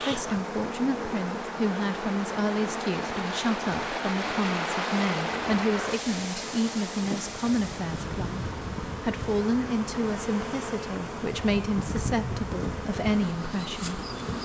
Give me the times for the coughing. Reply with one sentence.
The coughing can't be heard in this clip.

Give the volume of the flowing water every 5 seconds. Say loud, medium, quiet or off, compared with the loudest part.
loud, loud, medium.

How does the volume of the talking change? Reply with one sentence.
The loudness of the talking stays about the same.